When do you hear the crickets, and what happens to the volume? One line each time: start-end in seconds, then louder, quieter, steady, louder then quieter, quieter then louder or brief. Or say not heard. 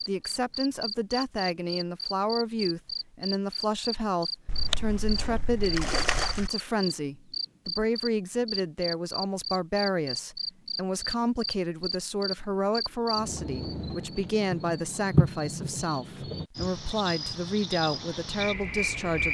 0.0-19.2 steady.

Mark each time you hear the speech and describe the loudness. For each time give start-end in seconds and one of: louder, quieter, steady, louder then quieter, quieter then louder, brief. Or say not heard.
0.1-19.2 steady.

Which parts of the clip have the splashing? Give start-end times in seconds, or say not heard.
4.5-6.5.